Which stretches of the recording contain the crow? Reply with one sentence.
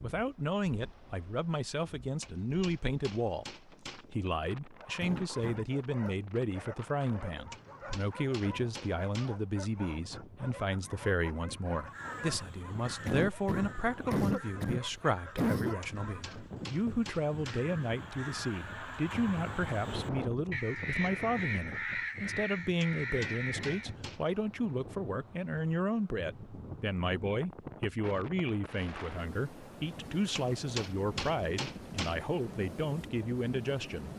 You can hear the crow from 11.8 to 23.9 s.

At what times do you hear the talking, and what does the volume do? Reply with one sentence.
The talking can be heard from 0.0 to 34.1 s, at a steady volume.